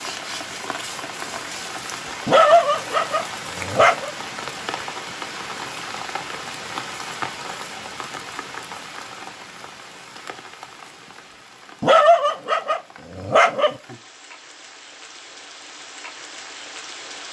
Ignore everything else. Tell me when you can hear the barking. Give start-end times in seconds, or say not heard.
2.2-4.1, 11.8-13.8.